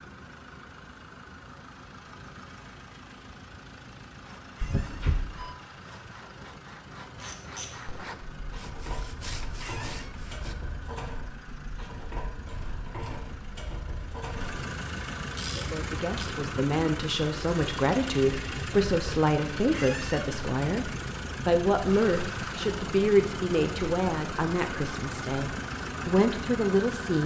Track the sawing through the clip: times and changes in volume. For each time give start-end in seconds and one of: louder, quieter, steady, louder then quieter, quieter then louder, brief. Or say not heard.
4.2-10.6 louder.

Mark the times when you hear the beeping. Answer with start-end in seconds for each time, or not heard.
4.6-5.5.